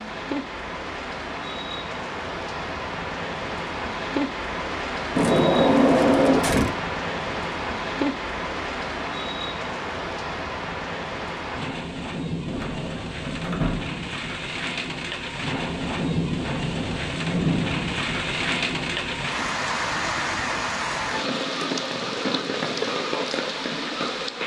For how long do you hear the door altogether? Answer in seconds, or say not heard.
3 s.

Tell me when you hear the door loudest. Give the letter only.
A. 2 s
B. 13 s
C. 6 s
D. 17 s
C.